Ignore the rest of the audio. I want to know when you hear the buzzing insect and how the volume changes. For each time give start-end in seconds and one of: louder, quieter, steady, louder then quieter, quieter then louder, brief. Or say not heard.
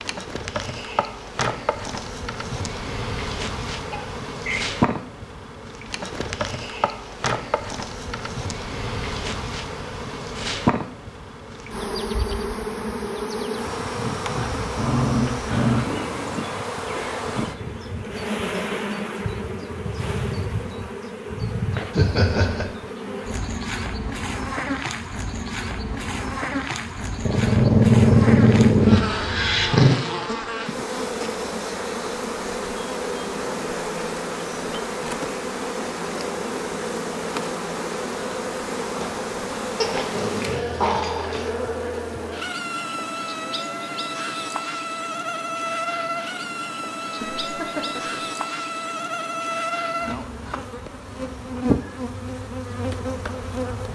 0.0-53.9 steady.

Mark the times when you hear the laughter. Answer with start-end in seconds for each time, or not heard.
3.9-4.7, 21.9-22.7, 47.2-48.2.